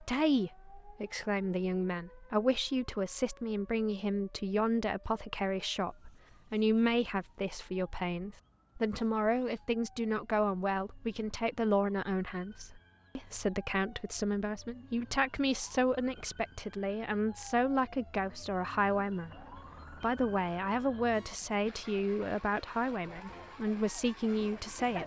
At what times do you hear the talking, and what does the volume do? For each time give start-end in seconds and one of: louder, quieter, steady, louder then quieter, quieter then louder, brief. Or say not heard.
0.0-25.0 steady.